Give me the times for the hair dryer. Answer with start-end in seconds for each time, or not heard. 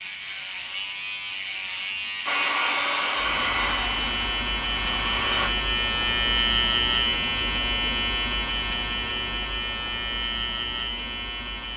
2.2-5.5.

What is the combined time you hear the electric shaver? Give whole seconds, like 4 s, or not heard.
12 s.